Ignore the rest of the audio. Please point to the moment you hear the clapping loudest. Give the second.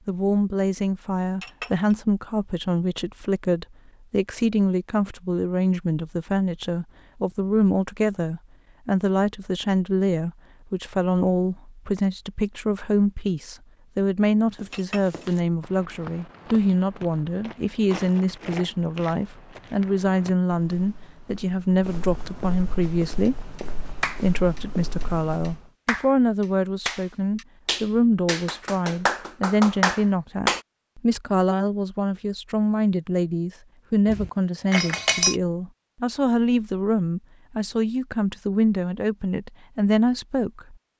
30 s.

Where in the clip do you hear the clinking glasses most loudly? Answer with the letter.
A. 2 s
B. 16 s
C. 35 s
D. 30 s
C.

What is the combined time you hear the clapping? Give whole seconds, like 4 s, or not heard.
8 s.